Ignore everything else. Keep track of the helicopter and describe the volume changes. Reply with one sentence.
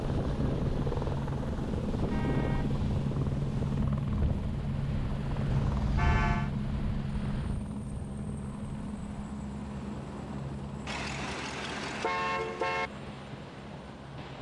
The loudness of the helicopter goes down.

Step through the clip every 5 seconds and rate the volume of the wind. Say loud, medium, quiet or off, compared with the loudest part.
loud, medium, medium.